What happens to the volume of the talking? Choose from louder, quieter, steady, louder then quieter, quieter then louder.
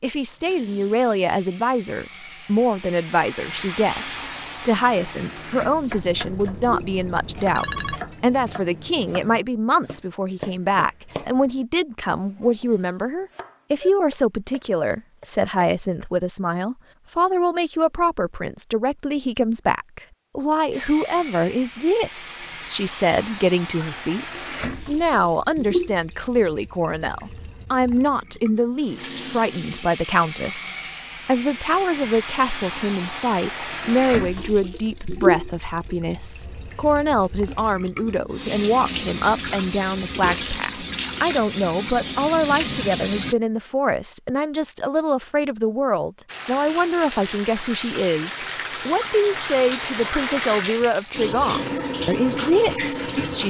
steady.